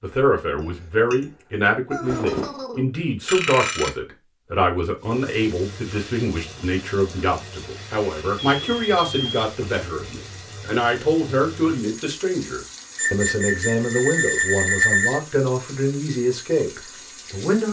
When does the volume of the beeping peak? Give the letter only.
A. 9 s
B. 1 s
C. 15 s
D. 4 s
C.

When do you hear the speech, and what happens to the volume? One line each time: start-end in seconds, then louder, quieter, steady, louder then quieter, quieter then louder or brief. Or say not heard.
0.0-17.6 steady.